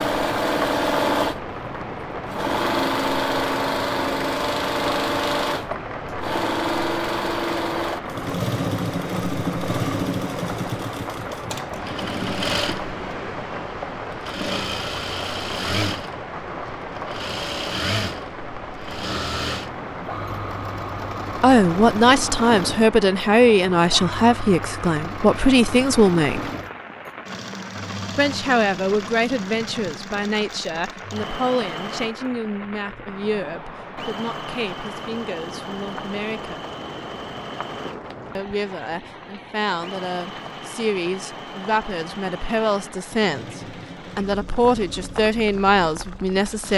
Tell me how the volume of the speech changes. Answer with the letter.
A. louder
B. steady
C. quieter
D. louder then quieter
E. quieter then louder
E.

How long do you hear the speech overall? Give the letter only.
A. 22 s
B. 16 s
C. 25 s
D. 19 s
A.